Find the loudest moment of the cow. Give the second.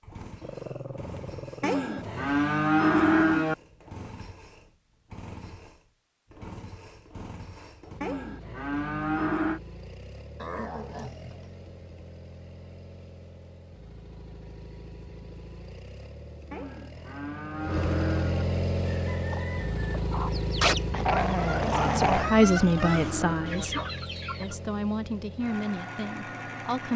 3 s.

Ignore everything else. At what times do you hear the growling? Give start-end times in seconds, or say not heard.
0.4-2.1, 10.3-11.5, 20.6-22.3.